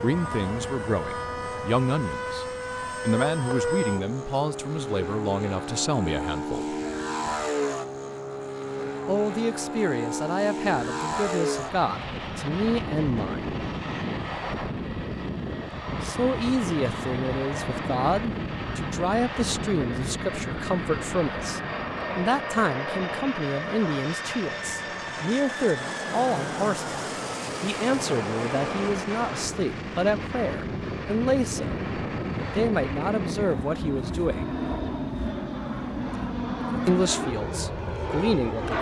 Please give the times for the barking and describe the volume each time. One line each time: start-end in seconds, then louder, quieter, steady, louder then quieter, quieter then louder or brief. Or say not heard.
not heard.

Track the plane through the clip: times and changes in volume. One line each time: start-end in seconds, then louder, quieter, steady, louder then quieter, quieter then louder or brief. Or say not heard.
0.0-38.7 steady.